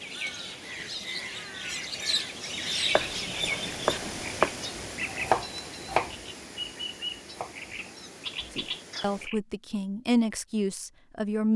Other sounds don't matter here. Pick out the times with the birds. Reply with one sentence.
The birds can be heard from 0.0 to 9.4 s.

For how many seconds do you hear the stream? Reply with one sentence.
The stream can be heard for 9 seconds in total.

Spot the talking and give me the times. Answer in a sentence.
The talking can be heard from 8.6 to 11.5 s.